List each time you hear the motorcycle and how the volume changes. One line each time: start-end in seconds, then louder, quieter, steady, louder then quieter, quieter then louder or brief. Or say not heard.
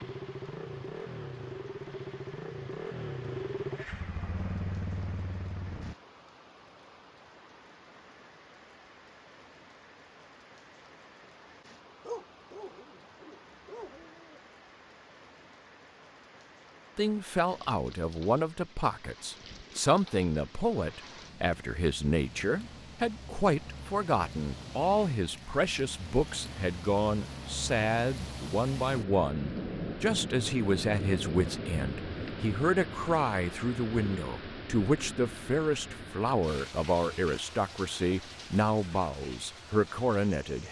0.0-6.0 steady.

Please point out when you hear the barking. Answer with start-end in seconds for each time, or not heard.
12.0-14.4.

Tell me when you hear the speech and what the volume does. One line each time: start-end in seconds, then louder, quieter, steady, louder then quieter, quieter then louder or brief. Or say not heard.
16.9-40.6 steady.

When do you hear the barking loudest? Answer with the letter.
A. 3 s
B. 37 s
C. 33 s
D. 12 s
D.